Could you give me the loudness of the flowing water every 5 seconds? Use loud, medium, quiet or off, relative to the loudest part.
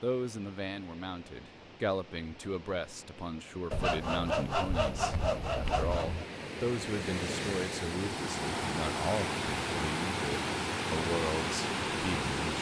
quiet, loud, loud.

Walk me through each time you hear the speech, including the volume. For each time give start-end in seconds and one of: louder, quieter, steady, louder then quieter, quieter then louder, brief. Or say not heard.
0.0-12.5 steady.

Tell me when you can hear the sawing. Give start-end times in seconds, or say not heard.
3.7-6.2.